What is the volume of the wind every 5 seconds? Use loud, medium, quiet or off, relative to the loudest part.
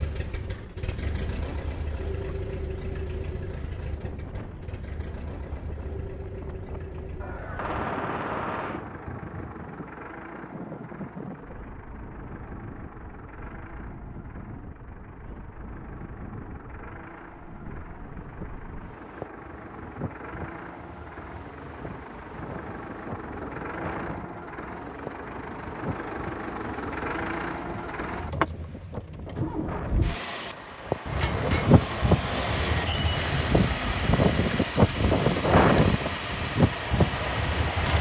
quiet, quiet, quiet, quiet, quiet, quiet, loud, loud.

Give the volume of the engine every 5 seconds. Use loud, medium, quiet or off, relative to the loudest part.
medium, medium, quiet, quiet, medium, loud, loud, loud.